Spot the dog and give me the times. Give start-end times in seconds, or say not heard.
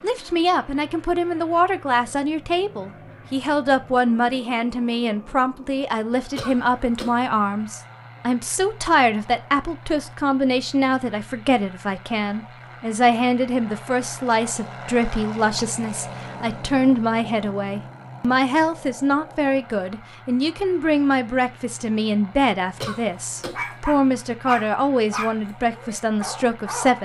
23.4-27.0.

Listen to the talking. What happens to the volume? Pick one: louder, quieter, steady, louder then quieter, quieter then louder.
steady.